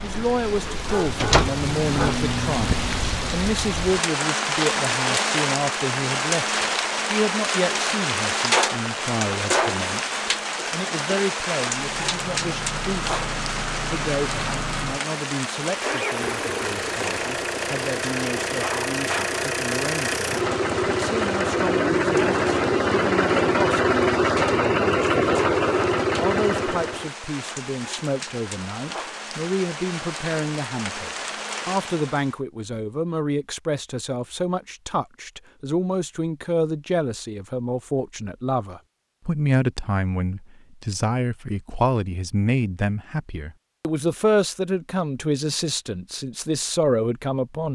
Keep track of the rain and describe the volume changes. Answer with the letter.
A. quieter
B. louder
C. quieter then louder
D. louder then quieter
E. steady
A.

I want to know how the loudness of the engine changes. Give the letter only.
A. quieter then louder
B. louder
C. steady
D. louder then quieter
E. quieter
B.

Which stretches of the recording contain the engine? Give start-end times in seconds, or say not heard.
11.9-27.1.